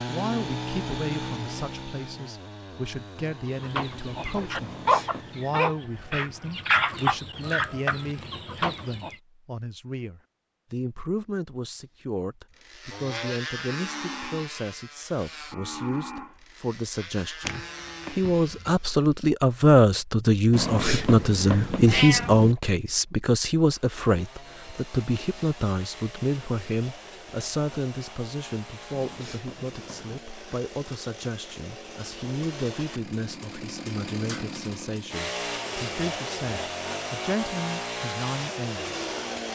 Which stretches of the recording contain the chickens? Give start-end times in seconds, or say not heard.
3.6-9.2.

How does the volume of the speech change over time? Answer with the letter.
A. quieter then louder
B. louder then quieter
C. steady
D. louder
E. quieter
B.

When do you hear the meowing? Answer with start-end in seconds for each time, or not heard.
4.5-5.5, 20.5-22.6, 28.9-30.2.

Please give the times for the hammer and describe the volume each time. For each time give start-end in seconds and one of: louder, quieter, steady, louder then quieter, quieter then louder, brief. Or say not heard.
not heard.